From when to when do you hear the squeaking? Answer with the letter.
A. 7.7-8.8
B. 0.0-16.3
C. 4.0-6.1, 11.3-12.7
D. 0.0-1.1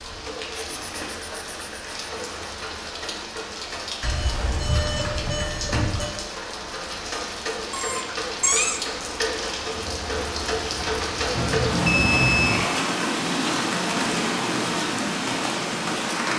A.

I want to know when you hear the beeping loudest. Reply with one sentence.
The loudest moment of the beeping is at 12 seconds.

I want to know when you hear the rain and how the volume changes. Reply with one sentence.
You can hear the rain from 0.0 to 16.3 s, getting louder.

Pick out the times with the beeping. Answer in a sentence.
The beeping can be heard from 4.0 to 6.1 s and from 11.3 to 12.7 s.